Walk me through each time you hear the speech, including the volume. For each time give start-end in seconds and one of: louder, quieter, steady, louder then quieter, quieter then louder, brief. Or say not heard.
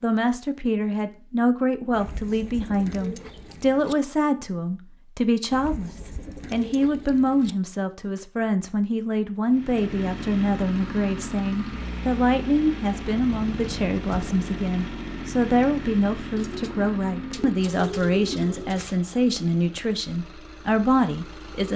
0.0-21.7 steady.